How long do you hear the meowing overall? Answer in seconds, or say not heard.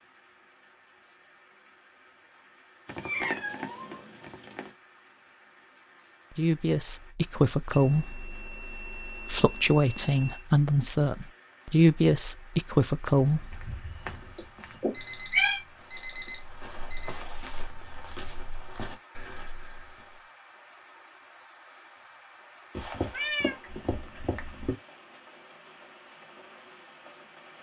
5 s.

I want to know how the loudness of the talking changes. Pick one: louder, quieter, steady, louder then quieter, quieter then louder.
quieter then louder.